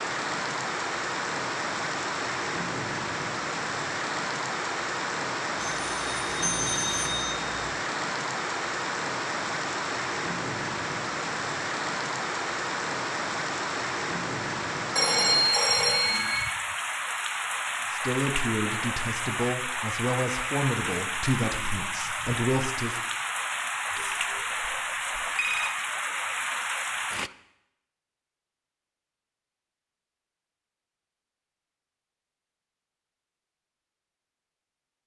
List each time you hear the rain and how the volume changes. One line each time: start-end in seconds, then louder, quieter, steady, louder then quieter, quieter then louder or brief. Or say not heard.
0.0-27.3 steady.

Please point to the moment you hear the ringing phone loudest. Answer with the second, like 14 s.
15 s.